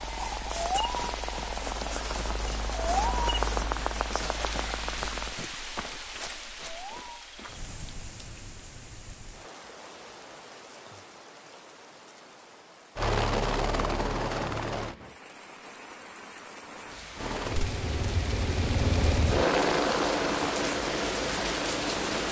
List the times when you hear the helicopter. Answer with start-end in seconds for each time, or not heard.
0.0-5.3, 12.9-14.9, 17.1-22.2.